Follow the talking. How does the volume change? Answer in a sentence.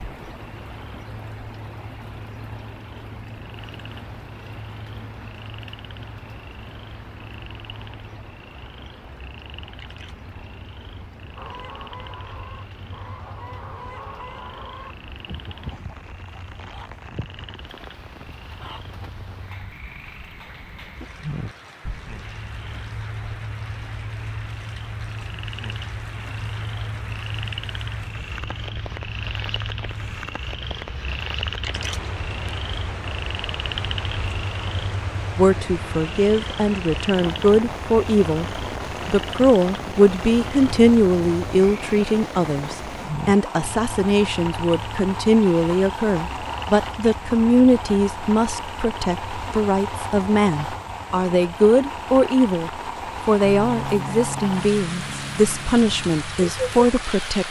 The loudness of the talking stays about the same.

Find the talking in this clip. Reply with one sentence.
The talking can be heard from 35.4 to 38.5 s and from 39.0 to 57.4 s.